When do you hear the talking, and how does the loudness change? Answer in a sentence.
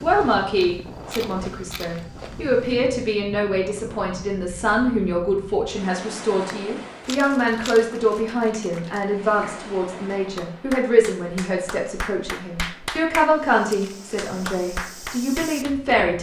The talking can be heard from 0.0 to 16.1 s, at a steady volume.